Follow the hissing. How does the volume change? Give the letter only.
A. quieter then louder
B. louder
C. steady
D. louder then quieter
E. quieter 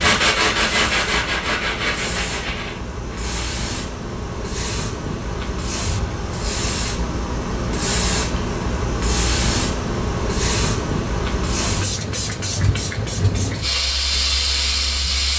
B.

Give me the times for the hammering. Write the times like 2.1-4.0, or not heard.
not heard.